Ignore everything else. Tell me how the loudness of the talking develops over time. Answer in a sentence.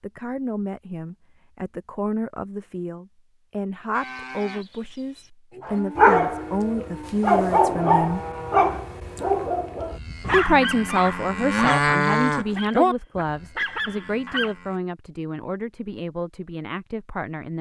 The loudness of the talking goes up, then down.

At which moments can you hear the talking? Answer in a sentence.
You can hear the talking from 0.0 to 8.2 s and from 10.3 to 17.5 s.